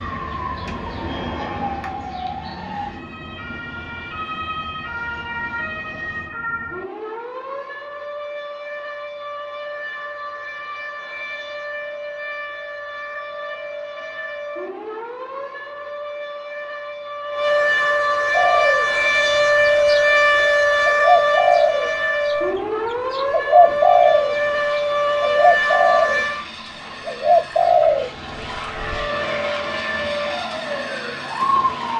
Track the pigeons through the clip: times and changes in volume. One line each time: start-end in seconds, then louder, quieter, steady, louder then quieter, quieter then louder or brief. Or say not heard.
18.3-22.4 quieter then louder
23.1-24.4 brief
25.2-26.2 brief
27.1-28.9 brief.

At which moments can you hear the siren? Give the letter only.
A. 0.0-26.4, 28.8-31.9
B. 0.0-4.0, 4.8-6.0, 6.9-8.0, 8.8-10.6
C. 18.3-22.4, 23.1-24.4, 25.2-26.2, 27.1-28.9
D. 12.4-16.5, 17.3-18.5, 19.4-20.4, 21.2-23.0
A.